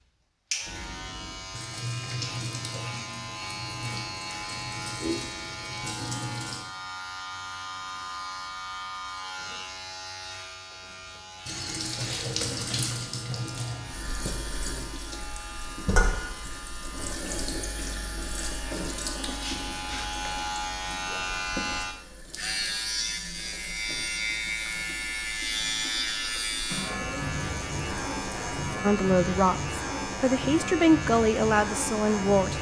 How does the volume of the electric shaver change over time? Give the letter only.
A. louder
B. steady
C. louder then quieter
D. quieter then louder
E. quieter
D.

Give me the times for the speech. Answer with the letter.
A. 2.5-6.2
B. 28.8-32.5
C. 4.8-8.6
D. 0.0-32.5
B.